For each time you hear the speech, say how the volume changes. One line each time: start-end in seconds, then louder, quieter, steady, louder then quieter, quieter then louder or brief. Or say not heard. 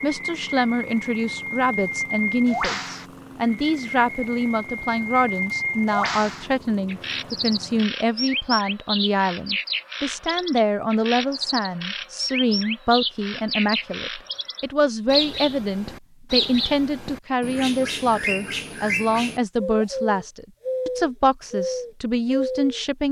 0.0-23.0 steady.